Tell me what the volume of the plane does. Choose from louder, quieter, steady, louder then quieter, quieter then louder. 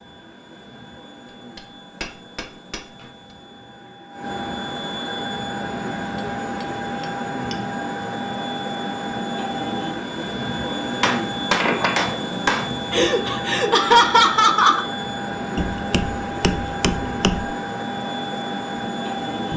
louder.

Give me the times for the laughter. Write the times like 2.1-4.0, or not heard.
12.9-14.8.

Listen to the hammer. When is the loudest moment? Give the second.
12 s.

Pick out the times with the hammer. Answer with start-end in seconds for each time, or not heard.
1.6-3.0, 6.2-7.6, 11.0-12.7, 15.6-17.4.